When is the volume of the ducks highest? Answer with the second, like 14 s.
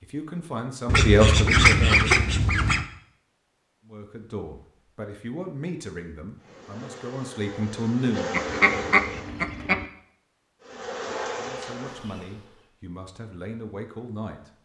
2 s.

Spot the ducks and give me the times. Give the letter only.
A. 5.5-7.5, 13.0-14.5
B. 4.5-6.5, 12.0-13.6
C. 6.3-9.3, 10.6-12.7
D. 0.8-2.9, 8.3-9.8
D.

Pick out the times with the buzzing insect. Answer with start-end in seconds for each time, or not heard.
6.3-9.3, 10.6-12.7.